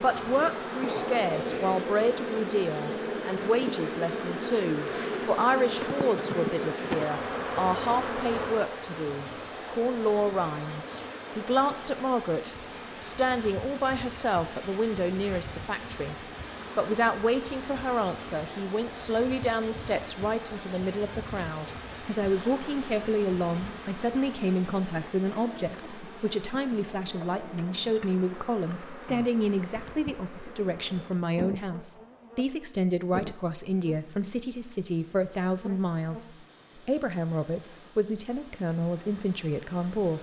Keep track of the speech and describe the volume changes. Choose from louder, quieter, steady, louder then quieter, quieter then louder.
steady.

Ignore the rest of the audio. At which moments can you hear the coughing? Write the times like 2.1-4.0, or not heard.
not heard.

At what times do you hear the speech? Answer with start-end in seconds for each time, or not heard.
0.0-40.1.